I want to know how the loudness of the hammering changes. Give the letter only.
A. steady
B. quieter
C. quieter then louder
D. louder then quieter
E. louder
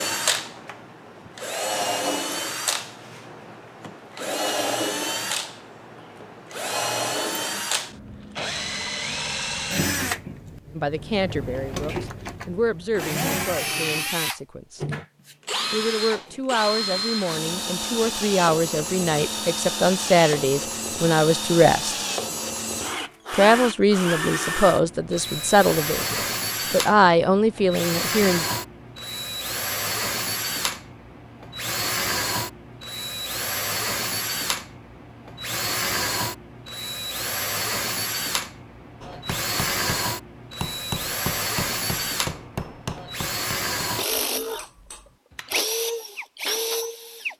D.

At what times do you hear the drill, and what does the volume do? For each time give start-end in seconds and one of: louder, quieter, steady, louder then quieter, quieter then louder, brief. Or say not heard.
0.0-47.3 steady.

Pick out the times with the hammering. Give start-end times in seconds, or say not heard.
39.0-45.6.